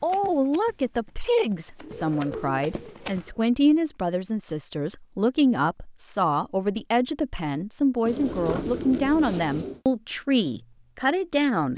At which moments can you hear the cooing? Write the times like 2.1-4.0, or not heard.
1.8-3.4, 8.1-9.8.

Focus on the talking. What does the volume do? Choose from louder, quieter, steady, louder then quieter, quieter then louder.
steady.